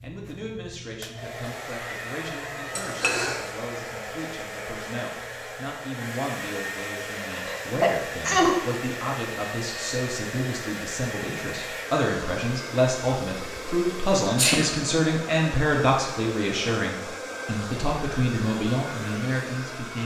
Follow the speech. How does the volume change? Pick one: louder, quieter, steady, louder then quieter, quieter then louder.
louder.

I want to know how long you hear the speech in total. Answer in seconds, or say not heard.
20 s.